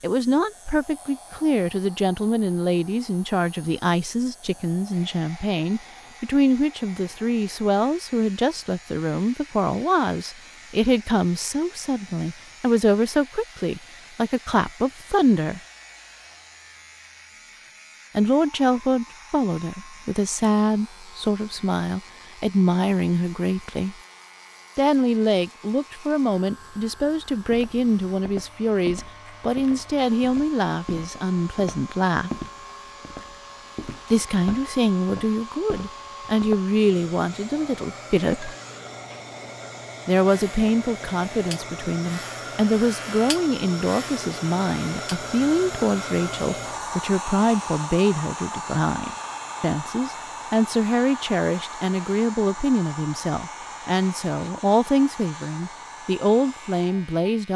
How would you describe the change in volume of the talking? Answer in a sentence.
The loudness of the talking stays about the same.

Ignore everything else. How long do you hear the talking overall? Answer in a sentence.
You can hear the talking for 51 seconds altogether.